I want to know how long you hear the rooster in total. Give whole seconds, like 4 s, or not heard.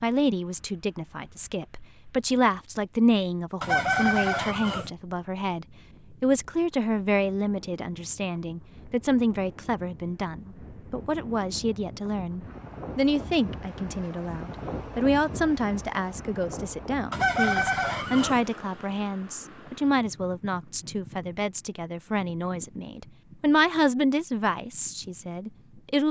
3 s.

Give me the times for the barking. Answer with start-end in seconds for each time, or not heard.
not heard.